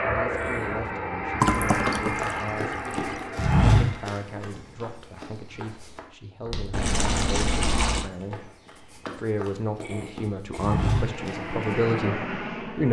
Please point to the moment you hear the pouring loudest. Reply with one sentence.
The loudest moment of the pouring is at 2 seconds.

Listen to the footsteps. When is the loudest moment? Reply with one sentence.
The volume of the footsteps peaks at 4 seconds.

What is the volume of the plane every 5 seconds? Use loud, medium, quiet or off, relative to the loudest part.
loud, off, loud.